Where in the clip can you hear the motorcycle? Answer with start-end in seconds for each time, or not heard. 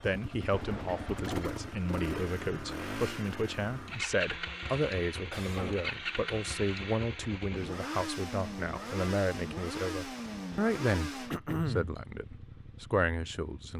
0.0-13.7.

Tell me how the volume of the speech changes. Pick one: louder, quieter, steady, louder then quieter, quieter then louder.
steady.